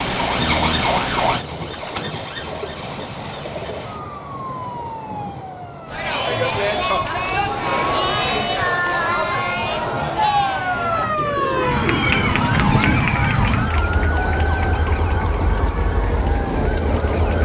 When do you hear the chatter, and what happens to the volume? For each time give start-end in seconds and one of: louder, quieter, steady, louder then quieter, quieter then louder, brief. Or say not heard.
5.8-17.2 quieter.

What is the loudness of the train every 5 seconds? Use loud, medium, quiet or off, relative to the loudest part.
medium, medium, loud, loud.